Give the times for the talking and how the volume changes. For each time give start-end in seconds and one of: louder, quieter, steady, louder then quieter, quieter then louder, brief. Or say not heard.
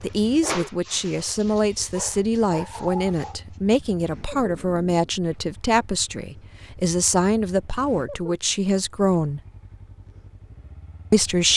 0.0-9.4 steady
11.1-11.5 brief.